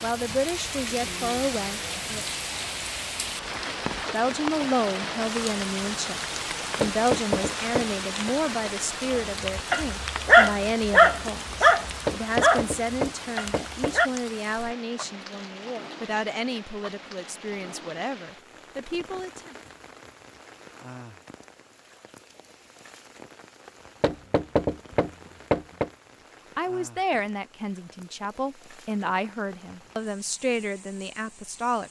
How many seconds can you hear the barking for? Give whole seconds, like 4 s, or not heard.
5 s.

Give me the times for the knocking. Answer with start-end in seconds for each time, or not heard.
6.8-8.3, 12.1-13.9, 24.0-25.9.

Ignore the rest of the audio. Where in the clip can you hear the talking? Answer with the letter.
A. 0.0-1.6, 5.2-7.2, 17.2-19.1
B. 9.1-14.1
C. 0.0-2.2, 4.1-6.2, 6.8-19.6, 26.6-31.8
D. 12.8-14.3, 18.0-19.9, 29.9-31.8
C.